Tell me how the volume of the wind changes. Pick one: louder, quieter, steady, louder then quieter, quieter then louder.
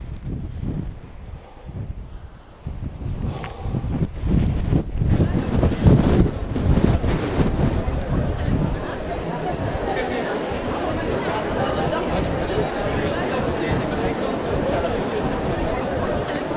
louder then quieter.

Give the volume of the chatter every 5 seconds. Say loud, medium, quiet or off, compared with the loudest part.
off, medium, loud, loud.